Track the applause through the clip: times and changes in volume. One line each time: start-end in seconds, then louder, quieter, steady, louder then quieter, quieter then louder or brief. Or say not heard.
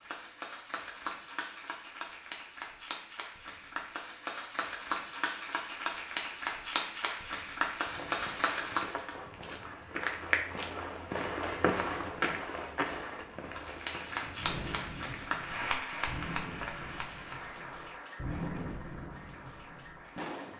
0.0-9.1 louder
13.5-20.5 quieter.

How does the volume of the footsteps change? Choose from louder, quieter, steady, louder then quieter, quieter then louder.
louder then quieter.